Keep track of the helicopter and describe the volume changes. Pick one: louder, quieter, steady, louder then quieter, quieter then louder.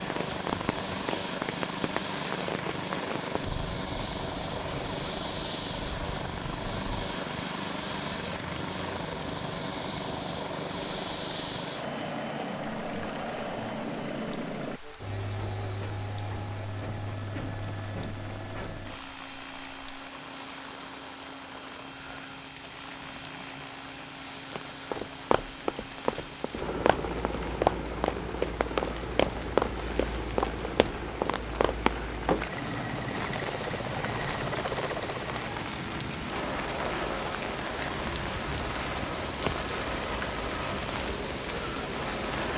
steady.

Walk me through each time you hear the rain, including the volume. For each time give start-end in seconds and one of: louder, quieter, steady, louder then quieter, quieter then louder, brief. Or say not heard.
0.0-42.5 quieter then louder.